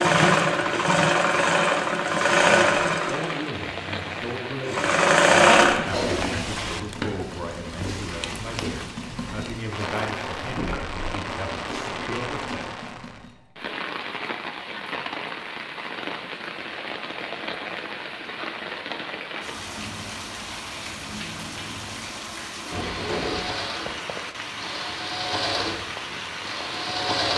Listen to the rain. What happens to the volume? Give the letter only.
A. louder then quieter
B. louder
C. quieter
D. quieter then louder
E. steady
E.